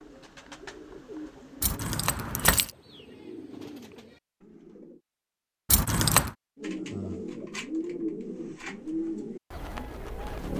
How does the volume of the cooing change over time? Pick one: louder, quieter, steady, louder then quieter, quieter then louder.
louder.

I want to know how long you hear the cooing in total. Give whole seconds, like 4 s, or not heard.
9 s.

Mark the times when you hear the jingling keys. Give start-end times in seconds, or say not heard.
1.6-2.7, 5.7-6.3.